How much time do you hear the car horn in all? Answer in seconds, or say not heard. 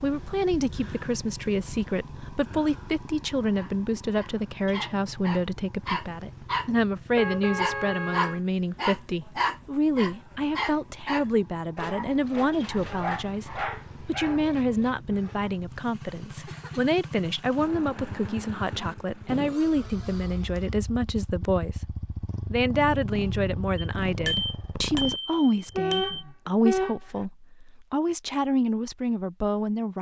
3 s.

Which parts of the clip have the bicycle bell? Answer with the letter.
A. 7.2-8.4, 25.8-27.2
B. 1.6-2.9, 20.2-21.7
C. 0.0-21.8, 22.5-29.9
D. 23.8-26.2
D.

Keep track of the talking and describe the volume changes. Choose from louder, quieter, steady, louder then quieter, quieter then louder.
steady.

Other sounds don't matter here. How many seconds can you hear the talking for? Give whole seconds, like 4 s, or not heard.
29 s.